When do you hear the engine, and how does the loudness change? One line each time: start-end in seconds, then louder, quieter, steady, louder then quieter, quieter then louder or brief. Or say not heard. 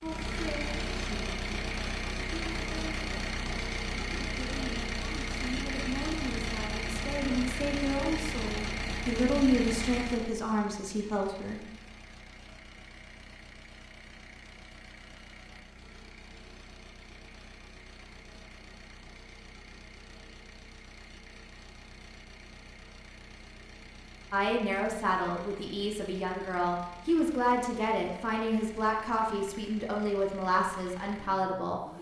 0.0-31.9 quieter.